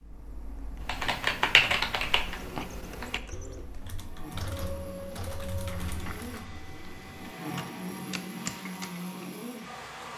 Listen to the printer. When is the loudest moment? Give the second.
5 s.